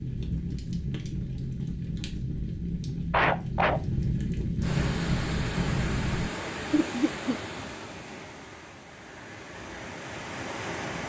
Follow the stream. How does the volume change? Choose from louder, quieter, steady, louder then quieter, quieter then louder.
quieter then louder.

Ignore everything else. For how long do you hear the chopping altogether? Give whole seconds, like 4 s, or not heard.
not heard.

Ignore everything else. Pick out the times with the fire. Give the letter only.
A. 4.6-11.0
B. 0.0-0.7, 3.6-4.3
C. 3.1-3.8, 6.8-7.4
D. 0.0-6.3
D.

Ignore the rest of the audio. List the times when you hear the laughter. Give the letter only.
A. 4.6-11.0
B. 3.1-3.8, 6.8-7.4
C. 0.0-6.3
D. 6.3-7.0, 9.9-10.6
B.